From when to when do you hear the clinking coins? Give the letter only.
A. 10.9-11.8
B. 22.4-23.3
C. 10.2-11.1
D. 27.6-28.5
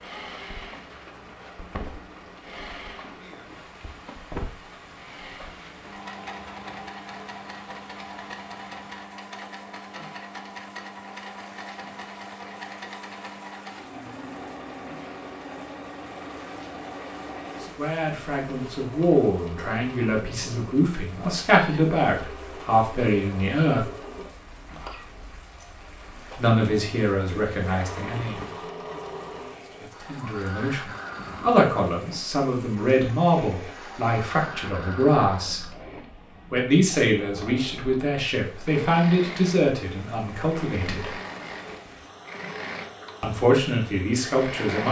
D.